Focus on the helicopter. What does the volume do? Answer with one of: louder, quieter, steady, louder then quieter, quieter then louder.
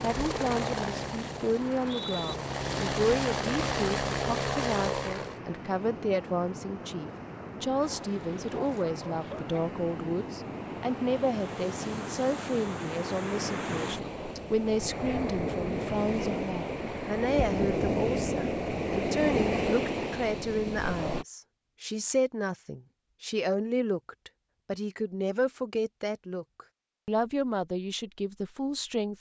quieter then louder.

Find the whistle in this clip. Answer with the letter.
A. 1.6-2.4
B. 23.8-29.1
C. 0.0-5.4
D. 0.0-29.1
A.